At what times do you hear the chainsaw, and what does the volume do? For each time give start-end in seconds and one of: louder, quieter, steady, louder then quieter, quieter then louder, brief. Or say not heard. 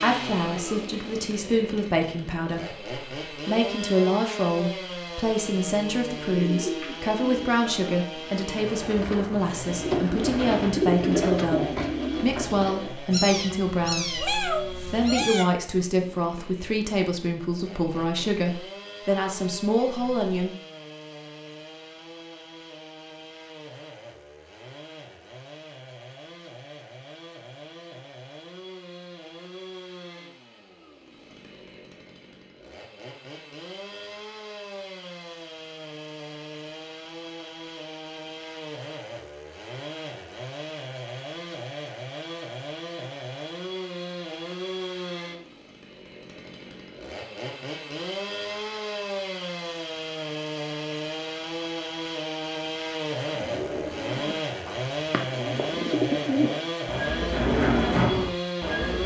0.0-59.0 quieter then louder.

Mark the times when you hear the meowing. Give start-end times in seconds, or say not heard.
13.1-15.4.